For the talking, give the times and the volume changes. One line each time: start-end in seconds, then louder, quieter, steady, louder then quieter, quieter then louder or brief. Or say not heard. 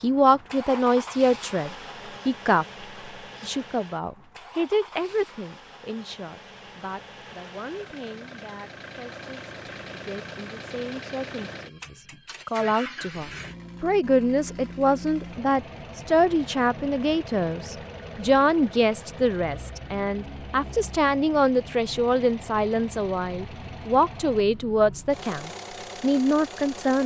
0.0-2.6 brief
3.4-27.0 louder.